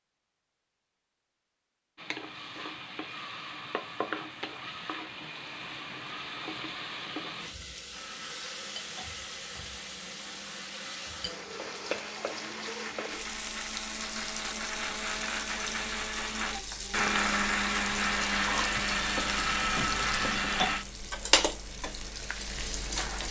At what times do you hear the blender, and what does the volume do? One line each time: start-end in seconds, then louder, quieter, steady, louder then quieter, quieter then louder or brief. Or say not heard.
7.8-20.9 louder.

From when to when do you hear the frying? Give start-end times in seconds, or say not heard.
1.9-23.2.